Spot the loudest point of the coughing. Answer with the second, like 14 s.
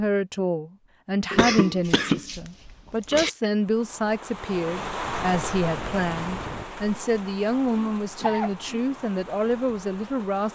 2 s.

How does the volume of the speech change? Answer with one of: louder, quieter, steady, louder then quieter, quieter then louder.
steady.